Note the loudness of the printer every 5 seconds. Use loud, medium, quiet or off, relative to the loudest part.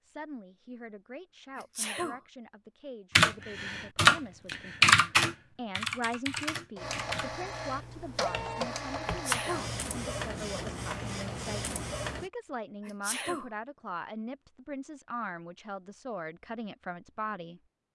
off, loud, loud, off.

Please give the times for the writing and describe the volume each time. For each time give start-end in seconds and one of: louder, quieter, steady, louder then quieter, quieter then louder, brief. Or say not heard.
not heard.